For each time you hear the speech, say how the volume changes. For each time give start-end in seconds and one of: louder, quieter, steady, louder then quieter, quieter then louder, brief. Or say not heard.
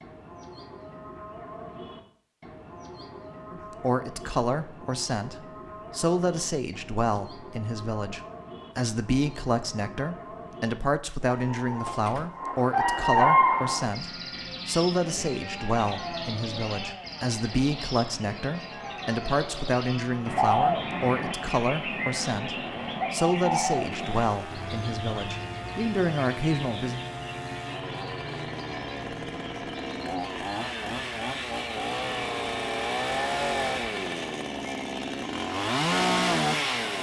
3.5-27.0 steady.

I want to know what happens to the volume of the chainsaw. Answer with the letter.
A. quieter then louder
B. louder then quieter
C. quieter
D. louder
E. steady
D.